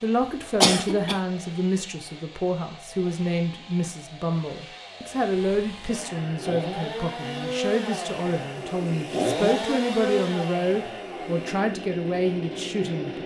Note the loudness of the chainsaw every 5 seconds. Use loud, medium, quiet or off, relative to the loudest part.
quiet, loud, loud.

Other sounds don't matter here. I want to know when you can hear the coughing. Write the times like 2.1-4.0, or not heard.
0.6-1.1.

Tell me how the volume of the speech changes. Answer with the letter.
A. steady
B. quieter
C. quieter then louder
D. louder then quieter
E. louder
A.